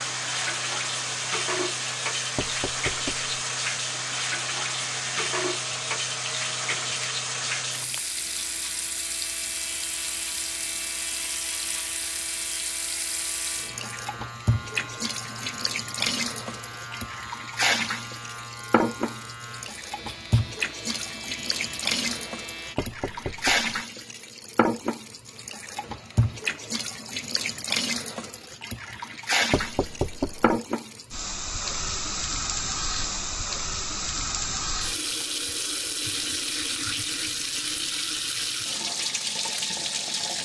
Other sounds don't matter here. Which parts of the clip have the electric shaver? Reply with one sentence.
The electric shaver can be heard from 0.0 to 22.8 s.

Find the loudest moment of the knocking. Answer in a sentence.
The loudest moment of the knocking is at 30 seconds.